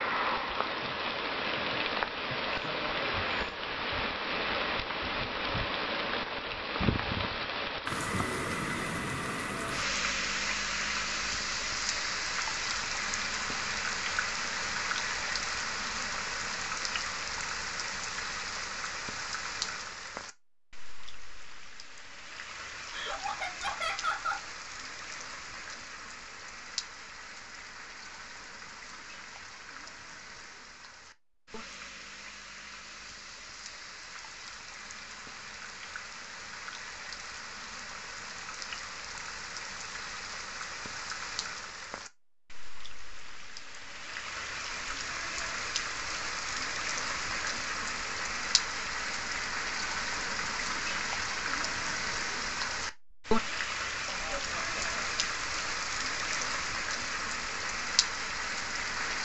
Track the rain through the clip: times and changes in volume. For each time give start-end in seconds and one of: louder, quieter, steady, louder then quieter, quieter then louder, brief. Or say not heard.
0.0-59.2 quieter then louder.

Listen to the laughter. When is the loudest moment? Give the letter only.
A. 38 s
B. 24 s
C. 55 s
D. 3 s
B.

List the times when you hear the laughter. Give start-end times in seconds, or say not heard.
2.5-3.3, 22.9-24.4, 54.0-55.2.